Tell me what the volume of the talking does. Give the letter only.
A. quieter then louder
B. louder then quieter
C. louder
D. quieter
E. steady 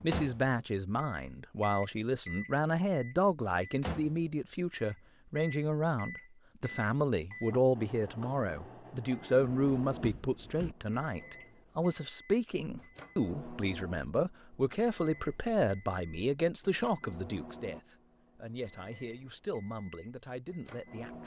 D.